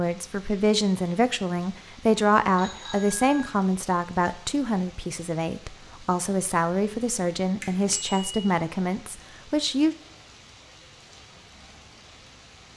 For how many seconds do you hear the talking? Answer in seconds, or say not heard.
10 s.